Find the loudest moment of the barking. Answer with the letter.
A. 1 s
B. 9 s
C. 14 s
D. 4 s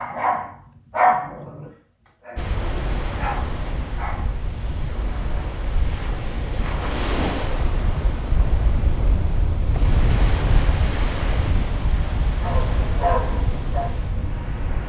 A.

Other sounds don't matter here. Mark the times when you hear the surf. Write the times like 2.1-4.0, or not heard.
2.4-14.8.